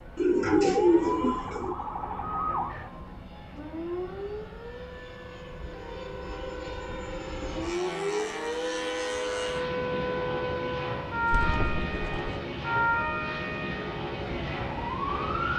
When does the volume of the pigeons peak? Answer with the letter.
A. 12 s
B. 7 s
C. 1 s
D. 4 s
C.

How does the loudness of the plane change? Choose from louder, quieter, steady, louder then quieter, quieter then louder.
louder.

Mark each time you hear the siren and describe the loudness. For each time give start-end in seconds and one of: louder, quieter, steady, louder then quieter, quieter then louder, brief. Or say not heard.
0.0-15.5 quieter then louder.